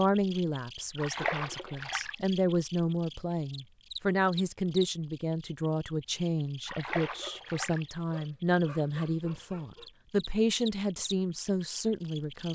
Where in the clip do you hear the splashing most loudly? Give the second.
1 s.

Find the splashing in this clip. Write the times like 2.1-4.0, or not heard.
0.9-2.1, 6.7-7.8.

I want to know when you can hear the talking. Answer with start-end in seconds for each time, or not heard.
0.0-12.5.